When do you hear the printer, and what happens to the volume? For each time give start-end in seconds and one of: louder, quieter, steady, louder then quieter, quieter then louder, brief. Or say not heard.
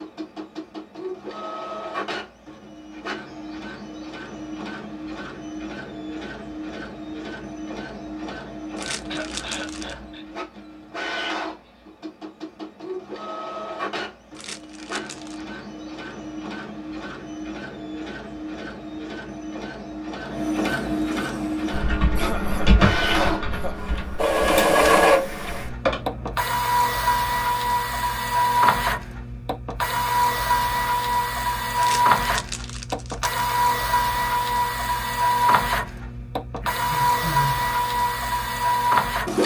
0.0-39.4 louder.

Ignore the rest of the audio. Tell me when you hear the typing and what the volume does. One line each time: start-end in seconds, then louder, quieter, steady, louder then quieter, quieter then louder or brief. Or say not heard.
21.7-26.4 quieter then louder.